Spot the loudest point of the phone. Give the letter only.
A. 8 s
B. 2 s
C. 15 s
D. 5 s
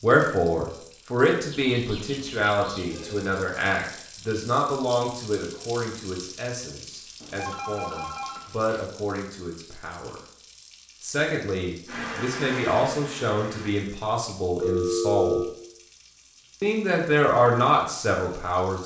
C.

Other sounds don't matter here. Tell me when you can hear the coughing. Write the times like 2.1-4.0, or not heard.
not heard.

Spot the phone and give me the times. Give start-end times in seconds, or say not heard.
1.6-3.4, 7.2-8.8, 14.6-15.4.